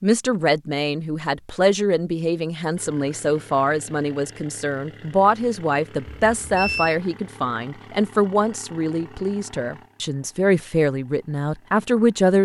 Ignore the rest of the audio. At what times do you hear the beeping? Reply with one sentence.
The beeping can be heard from 6.0 to 7.0 s.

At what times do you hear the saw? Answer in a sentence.
The saw can't be heard in this clip.